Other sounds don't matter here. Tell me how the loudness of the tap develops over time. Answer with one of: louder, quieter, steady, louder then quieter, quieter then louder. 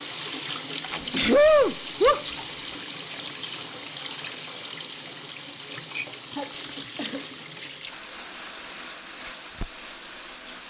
quieter.